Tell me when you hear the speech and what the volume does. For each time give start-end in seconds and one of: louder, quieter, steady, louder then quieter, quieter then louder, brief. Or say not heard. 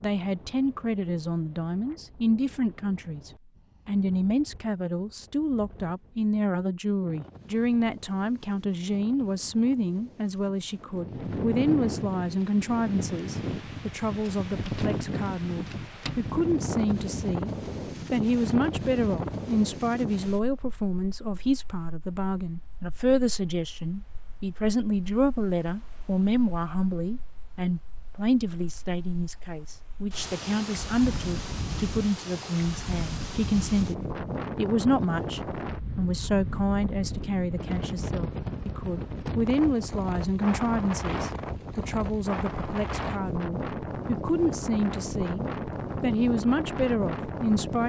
0.0-47.8 steady.